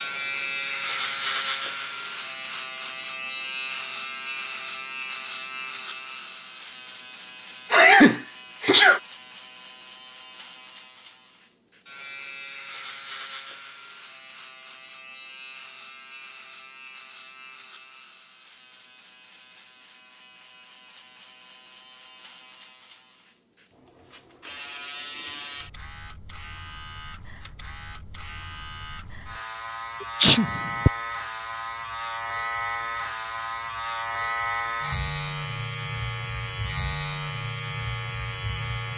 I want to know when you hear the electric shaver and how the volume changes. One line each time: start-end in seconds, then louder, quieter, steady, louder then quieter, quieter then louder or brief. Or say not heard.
0.0-38.9 quieter then louder.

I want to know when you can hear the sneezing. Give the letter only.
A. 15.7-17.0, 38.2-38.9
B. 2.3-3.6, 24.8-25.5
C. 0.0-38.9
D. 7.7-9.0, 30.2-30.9
D.